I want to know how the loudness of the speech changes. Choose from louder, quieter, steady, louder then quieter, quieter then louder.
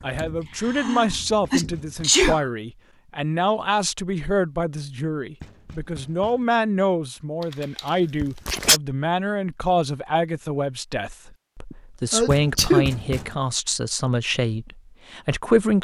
steady.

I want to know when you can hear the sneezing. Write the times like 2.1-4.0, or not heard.
0.1-2.5, 7.4-8.8, 11.7-12.9.